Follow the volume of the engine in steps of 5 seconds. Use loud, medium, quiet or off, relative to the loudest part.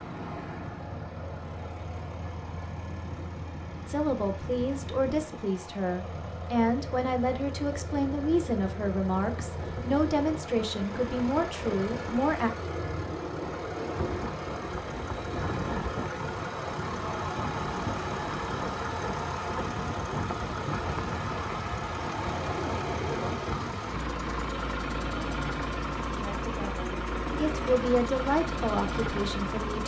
medium, medium, loud, loud, loud, loud.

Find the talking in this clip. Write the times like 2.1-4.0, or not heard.
3.9-12.5, 26.1-29.8.